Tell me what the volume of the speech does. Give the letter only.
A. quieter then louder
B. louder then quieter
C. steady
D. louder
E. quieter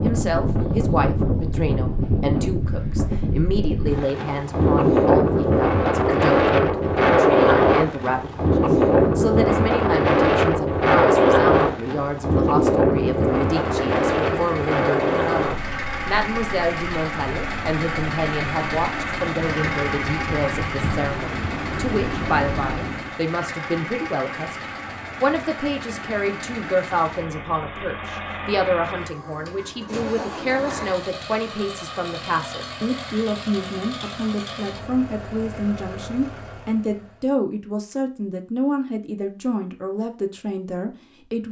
C.